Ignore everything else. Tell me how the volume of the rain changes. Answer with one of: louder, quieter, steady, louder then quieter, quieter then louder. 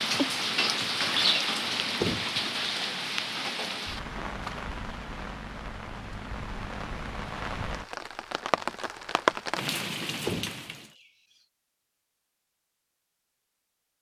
quieter then louder.